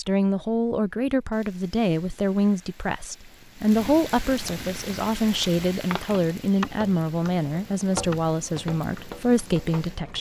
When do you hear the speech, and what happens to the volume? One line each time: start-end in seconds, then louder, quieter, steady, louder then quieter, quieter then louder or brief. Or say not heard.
0.0-10.1 steady.